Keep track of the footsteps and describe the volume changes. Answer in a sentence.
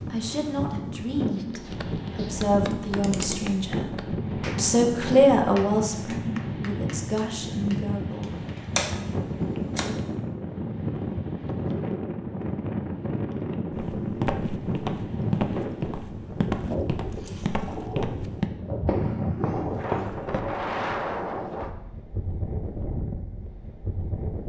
The loudness of the footsteps stays about the same.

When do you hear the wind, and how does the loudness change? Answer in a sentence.
The wind can be heard from 0.0 to 24.4 s, at a steady volume.